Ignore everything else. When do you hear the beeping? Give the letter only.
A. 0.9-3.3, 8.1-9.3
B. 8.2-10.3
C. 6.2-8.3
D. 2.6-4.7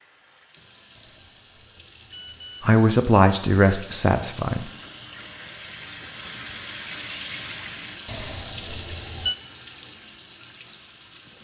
A.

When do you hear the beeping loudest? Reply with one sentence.
The loudest moment of the beeping is at 9 seconds.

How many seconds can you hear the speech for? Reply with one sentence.
You can hear the speech for 2 seconds altogether.